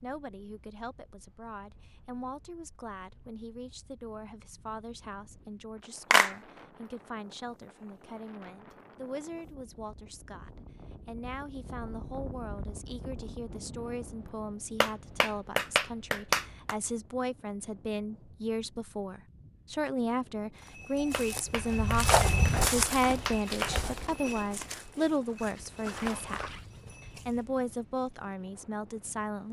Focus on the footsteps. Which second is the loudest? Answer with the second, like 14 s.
22 s.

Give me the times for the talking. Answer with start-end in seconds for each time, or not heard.
0.0-29.4.